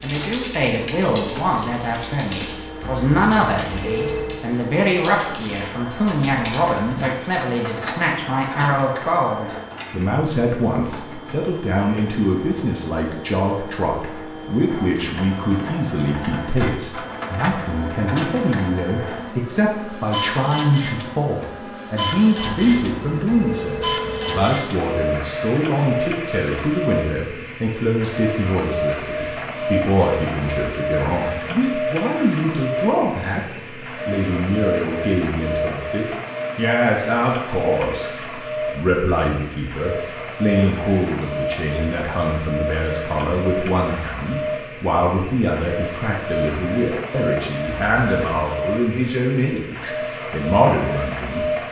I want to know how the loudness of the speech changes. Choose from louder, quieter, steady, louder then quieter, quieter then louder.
steady.